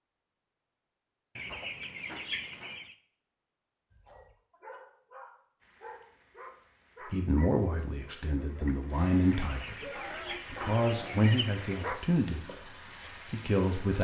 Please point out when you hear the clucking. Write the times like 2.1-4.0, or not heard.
1.4-3.0, 9.3-11.8.